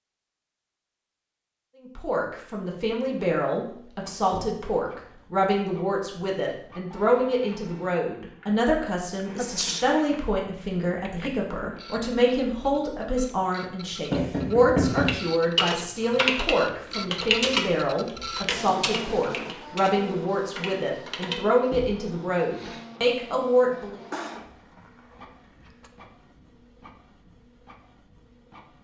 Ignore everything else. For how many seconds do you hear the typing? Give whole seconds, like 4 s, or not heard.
6 s.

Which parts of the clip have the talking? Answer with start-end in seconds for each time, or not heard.
1.8-24.0.